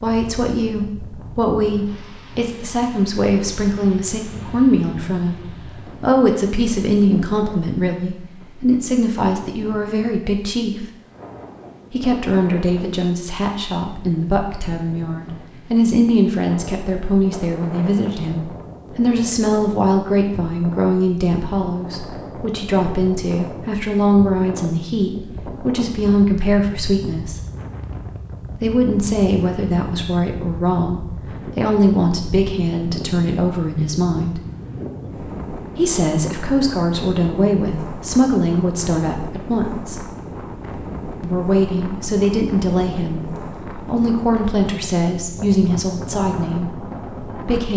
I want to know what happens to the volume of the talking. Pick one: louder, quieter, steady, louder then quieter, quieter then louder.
steady.